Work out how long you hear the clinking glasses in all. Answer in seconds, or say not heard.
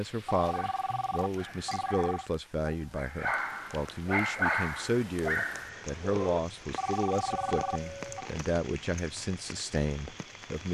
2 s.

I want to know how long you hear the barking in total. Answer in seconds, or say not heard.
6 s.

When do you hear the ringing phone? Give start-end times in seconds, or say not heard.
0.2-2.3, 6.8-8.3.